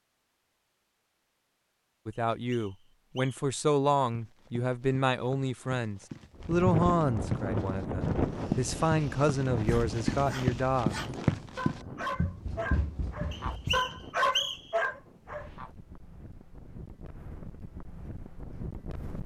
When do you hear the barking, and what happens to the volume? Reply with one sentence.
You can hear the barking from 8.3 to 15.7 s, getting louder.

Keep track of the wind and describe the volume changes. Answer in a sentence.
The loudness of the wind goes down, then up.